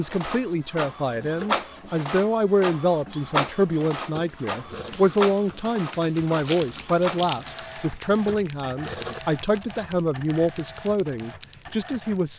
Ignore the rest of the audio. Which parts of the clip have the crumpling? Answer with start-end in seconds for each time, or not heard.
6.5-7.7.